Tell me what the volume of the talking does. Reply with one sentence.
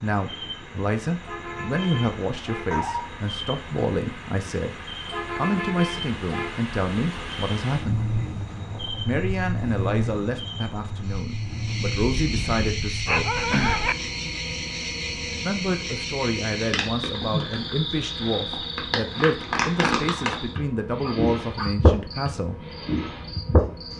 The loudness of the talking stays about the same.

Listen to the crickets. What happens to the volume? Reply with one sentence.
The volume of the crickets goes up.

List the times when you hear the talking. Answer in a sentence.
The talking can be heard from 0.0 to 8.1 s, from 9.1 to 13.2 s and from 15.4 to 22.6 s.